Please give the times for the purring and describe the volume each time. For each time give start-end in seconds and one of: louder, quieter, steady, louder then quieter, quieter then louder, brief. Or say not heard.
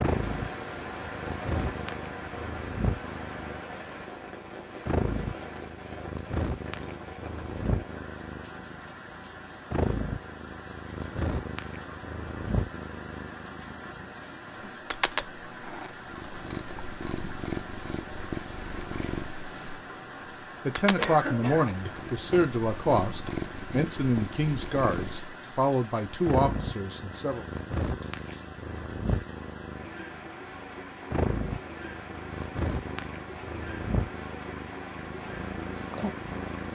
0.0-36.7 steady.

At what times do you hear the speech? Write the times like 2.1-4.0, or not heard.
20.6-27.4.